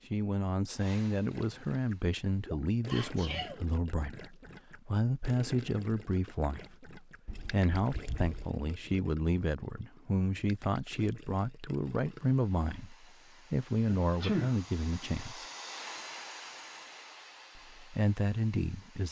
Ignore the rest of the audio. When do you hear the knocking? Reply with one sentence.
You can't hear the knocking here.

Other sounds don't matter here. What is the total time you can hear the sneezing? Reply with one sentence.
You can hear the sneezing for 3 seconds altogether.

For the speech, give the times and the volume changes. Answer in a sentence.
The speech can be heard from 0.1 to 15.4 s, at a steady volume; and briefly from 17.6 to 19.0 s.